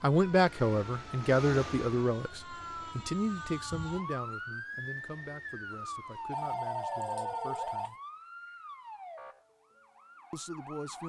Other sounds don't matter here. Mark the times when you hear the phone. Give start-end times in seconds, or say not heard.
6.3-7.9.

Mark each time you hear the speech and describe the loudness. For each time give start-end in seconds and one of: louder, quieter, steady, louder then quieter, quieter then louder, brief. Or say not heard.
0.0-8.0 quieter
10.3-11.0 brief.